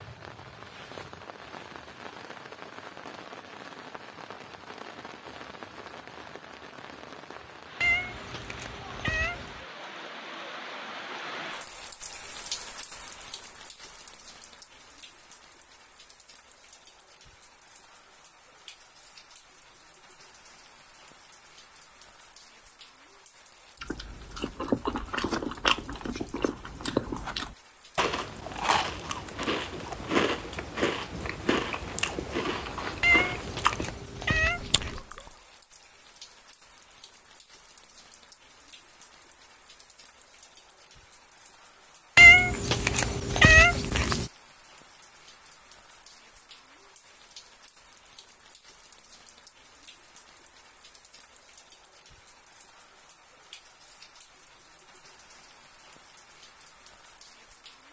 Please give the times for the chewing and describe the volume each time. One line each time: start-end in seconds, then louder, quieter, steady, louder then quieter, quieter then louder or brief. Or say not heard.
23.8-35.3 steady.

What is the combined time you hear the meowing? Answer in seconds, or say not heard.
6 s.